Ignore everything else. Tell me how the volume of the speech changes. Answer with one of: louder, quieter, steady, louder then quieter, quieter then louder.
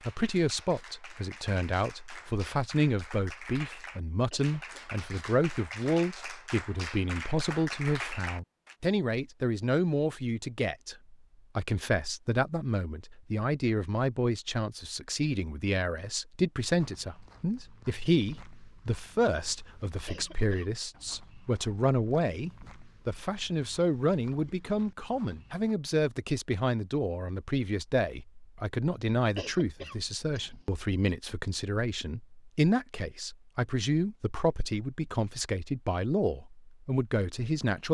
steady.